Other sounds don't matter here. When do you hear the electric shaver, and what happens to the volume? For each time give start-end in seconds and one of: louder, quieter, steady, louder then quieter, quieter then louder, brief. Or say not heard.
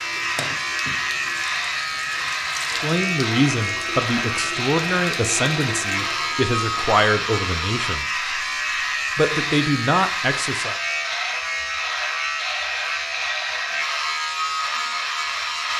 0.0-15.7 steady.